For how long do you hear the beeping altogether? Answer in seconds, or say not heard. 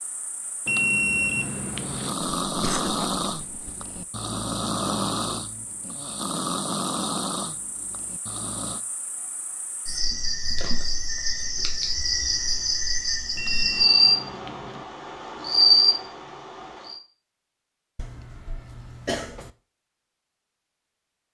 3 s.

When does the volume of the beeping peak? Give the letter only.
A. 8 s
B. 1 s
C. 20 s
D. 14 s
B.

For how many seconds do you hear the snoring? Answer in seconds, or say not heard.
7 s.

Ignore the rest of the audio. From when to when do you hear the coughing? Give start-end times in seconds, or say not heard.
2.5-3.9, 17.9-19.5.